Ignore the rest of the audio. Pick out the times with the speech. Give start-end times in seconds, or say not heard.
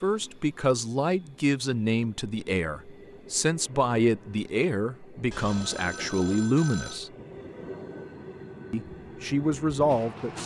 0.0-7.1, 8.7-10.4.